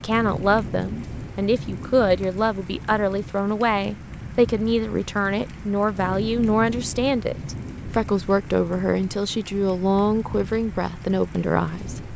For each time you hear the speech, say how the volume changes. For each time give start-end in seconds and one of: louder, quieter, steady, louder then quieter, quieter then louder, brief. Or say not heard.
0.0-12.1 steady.